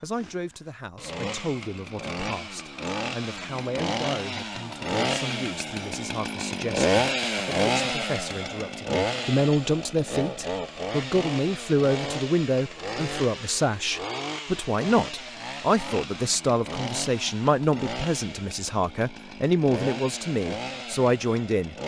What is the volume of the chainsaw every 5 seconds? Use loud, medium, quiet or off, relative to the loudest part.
medium, loud, medium, medium, medium.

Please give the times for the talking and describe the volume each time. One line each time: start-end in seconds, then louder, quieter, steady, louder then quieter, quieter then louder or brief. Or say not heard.
0.0-21.8 louder.